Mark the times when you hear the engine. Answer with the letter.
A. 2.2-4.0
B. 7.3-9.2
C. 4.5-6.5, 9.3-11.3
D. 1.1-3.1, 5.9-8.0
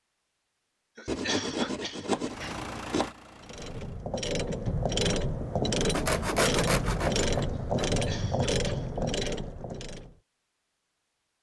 A.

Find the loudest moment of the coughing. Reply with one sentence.
The loudest moment of the coughing is at 1 second.